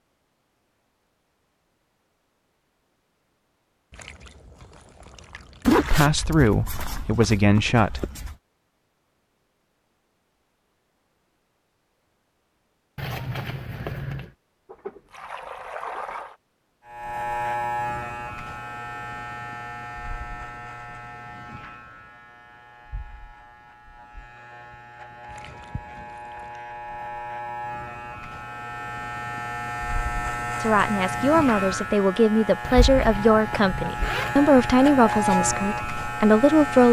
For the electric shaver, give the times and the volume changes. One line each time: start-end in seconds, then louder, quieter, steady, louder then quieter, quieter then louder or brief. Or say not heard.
16.9-36.8 quieter then louder.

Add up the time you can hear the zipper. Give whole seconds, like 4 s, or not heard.
6 s.